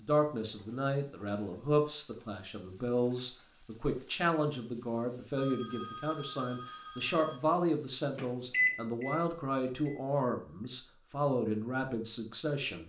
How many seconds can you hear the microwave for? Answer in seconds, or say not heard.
2 s.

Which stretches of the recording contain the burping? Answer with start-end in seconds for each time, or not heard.
not heard.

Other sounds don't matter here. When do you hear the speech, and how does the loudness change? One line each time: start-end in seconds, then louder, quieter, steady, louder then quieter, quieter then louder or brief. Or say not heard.
0.0-12.8 steady.